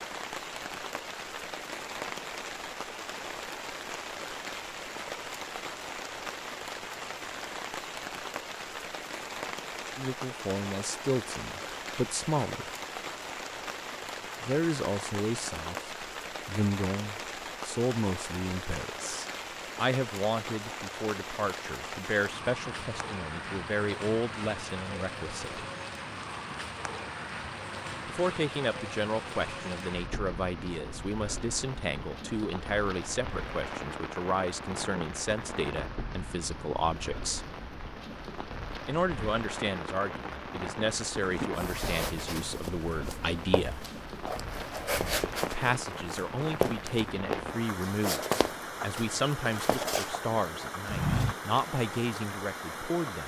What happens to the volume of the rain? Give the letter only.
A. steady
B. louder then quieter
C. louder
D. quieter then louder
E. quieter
A.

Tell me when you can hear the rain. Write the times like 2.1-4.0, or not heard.
0.0-53.2.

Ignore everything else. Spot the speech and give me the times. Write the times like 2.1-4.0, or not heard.
9.9-12.7, 14.4-25.6, 28.1-37.5, 38.9-43.8, 45.5-53.2.